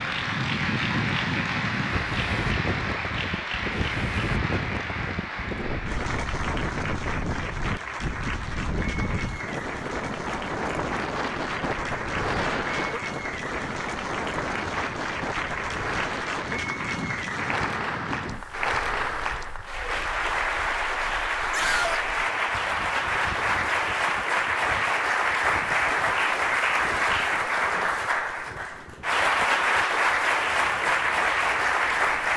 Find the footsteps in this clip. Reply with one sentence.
The footsteps can't be heard in this clip.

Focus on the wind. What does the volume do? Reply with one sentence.
The loudness of the wind goes down.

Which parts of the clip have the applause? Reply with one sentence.
You can hear the applause from 0.0 to 32.3 s.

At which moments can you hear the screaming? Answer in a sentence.
The screaming can be heard from 21.5 to 22.1 s.